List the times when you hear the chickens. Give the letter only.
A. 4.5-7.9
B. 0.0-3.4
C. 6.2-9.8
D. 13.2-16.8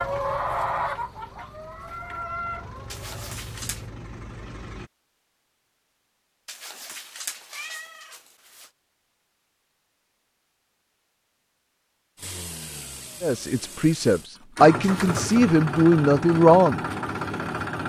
B.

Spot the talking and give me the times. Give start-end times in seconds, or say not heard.
13.2-16.8.